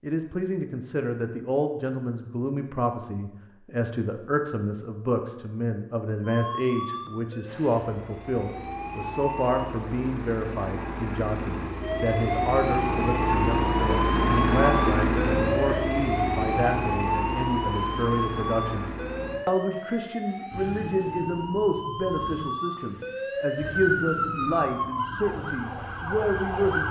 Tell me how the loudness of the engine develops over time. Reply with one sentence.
The loudness of the engine goes up, then down.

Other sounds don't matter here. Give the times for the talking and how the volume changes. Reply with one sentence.
You can hear the talking from 0.0 to 26.8 s, at a steady volume.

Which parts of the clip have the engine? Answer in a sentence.
The engine can be heard from 7.4 to 26.8 s.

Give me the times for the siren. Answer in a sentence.
The siren can be heard from 6.2 to 9.7 s and from 11.8 to 26.8 s.